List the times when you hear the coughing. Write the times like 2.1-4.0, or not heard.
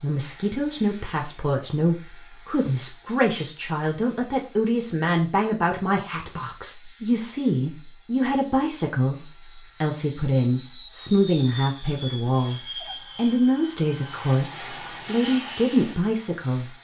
not heard.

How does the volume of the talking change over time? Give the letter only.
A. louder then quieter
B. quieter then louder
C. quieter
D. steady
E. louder
D.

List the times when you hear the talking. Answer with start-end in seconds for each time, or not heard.
0.0-16.7.